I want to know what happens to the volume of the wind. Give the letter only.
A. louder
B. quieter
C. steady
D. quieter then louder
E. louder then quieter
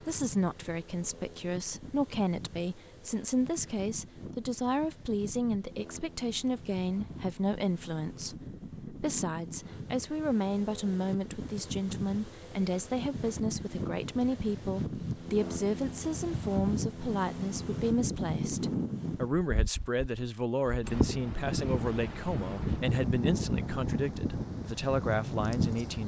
A.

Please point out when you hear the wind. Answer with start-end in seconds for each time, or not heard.
0.0-26.0.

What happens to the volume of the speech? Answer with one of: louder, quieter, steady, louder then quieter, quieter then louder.
steady.